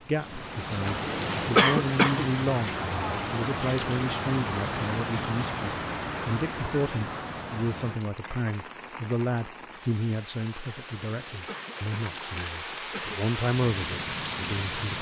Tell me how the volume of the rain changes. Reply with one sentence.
The loudness of the rain goes down, then up.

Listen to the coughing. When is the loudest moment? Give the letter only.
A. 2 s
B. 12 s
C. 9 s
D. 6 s
A.